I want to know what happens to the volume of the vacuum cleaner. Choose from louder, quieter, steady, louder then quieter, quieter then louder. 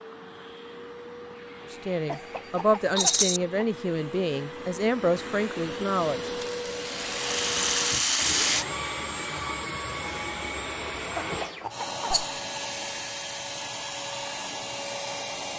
louder.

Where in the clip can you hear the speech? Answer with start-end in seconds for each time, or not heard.
1.7-6.3.